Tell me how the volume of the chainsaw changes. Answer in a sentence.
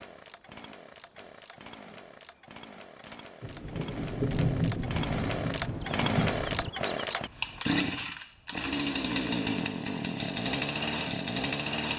The loudness of the chainsaw goes up.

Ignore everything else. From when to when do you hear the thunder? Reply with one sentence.
You can hear the thunder from 3.4 to 6.7 s.